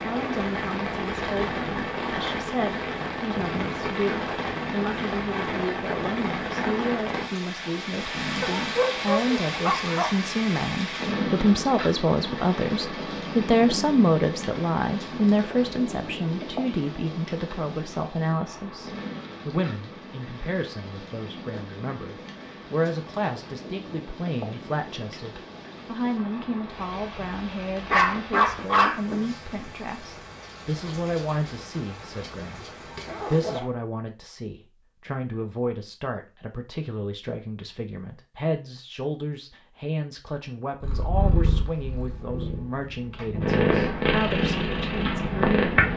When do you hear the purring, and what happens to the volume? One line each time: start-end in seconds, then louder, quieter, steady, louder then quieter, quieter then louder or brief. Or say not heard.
40.8-45.9 quieter then louder.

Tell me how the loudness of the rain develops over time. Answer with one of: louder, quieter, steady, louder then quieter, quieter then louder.
quieter.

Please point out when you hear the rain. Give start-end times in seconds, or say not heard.
0.0-33.6.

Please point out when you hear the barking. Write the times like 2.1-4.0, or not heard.
8.4-10.2, 27.9-29.2.